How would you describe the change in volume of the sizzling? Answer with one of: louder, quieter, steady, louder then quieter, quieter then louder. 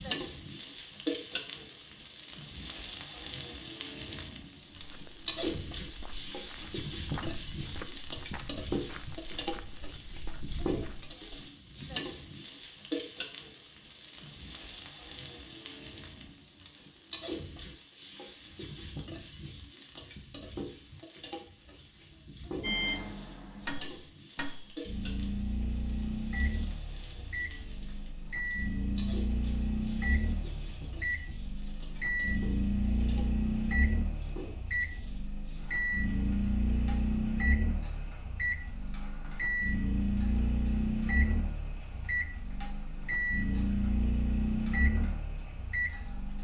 quieter.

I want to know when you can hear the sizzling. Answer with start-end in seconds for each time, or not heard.
0.0-46.3.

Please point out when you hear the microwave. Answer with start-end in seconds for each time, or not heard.
22.6-46.3.